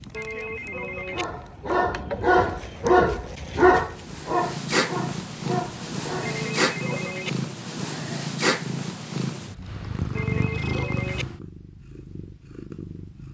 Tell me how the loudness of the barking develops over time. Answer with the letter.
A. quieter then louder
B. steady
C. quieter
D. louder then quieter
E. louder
C.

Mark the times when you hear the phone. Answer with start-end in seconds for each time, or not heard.
0.1-1.2, 6.2-7.3, 10.2-11.2.